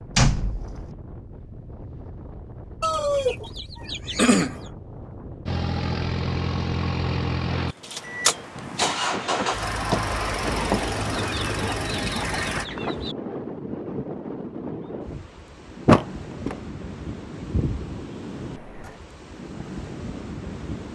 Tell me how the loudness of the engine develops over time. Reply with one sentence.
The volume of the engine stays about the same.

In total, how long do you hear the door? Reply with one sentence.
The door can be heard for 3 seconds in total.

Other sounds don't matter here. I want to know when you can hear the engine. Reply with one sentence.
You can hear the engine from 5.5 to 12.7 s.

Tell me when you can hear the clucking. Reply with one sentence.
You can hear the clucking from 2.8 to 4.5 s and from 11.1 to 13.2 s.